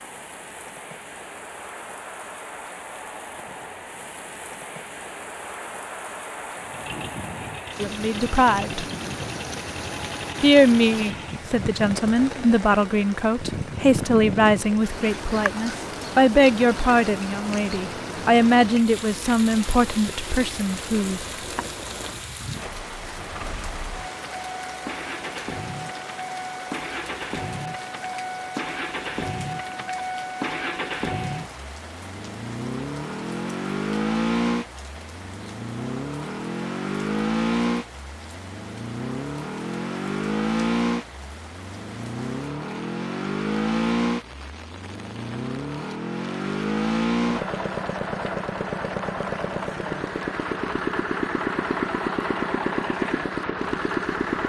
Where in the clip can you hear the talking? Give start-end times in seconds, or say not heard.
7.8-8.8, 10.4-21.6.